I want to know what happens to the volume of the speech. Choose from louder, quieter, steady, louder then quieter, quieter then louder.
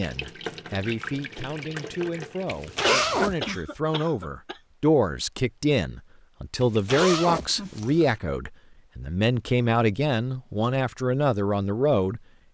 louder.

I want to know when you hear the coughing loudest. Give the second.
3 s.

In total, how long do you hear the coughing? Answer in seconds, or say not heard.
2 s.